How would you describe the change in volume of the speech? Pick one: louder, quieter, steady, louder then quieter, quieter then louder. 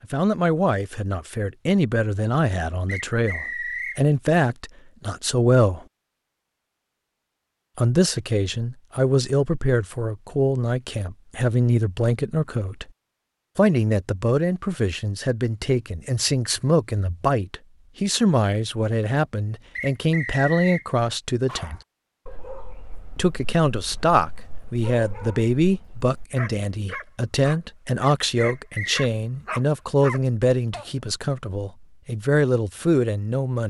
steady.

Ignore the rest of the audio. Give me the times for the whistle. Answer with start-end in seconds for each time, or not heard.
2.9-4.0, 19.8-20.9, 28.4-29.1.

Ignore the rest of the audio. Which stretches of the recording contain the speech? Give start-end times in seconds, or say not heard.
0.0-5.8, 7.8-12.9, 13.6-21.8, 23.1-33.6.